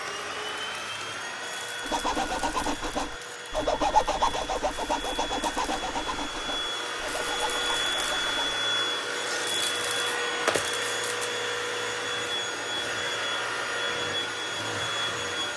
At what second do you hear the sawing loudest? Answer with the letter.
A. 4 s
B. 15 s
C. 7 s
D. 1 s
A.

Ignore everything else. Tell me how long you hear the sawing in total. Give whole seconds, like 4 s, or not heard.
7 s.